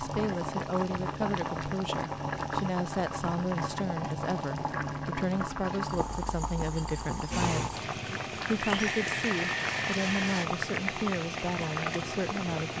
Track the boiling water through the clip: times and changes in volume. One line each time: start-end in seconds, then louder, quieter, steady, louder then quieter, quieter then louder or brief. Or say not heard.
0.0-12.7 steady.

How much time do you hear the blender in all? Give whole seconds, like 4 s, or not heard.
3 s.